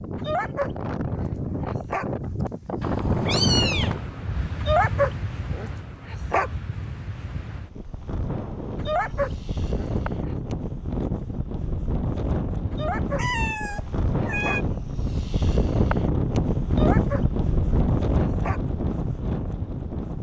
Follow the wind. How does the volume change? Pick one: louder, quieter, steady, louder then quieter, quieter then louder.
quieter then louder.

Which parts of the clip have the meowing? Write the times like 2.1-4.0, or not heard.
2.8-4.0, 13.2-14.7.